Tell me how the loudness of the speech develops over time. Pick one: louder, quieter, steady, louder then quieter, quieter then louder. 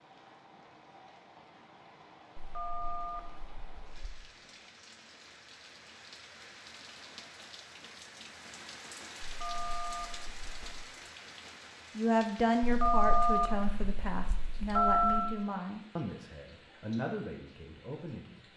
quieter.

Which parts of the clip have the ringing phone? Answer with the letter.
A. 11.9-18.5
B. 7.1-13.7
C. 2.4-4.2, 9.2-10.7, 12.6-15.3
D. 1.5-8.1
C.